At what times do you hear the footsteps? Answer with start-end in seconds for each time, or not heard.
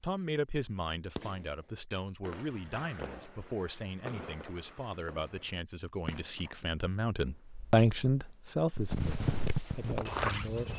8.7-10.7.